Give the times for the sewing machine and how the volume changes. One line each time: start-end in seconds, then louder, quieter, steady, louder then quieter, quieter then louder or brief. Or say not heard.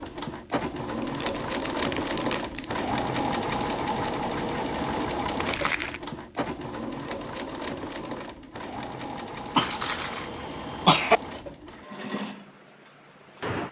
0.0-13.6 quieter.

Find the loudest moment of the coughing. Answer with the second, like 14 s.
11 s.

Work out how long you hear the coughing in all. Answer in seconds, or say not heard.
2 s.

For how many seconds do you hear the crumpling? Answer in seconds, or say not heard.
3 s.